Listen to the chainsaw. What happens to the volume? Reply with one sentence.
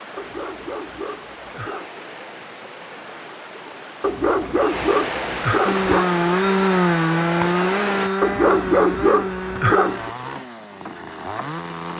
The volume of the chainsaw goes down.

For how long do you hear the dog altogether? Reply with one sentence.
The dog can be heard for 6 seconds in total.